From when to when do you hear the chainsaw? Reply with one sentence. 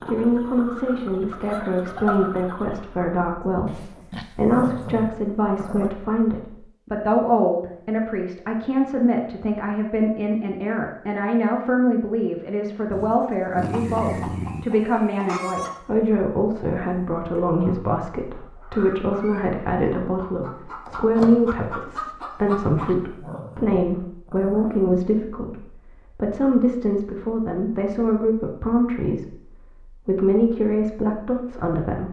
You can't hear the chainsaw here.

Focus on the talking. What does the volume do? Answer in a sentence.
The volume of the talking stays about the same.